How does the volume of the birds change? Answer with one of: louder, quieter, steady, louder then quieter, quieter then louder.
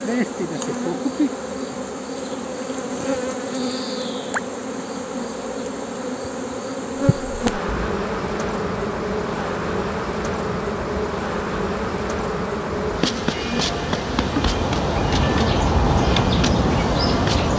louder.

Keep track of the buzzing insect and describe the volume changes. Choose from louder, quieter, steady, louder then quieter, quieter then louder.
steady.